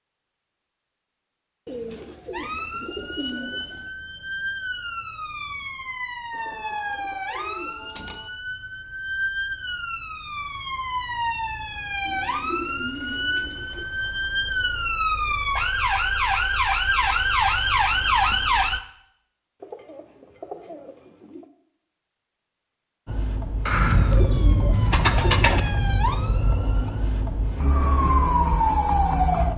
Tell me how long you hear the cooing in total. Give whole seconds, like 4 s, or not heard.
10 s.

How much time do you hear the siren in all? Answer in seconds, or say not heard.
23 s.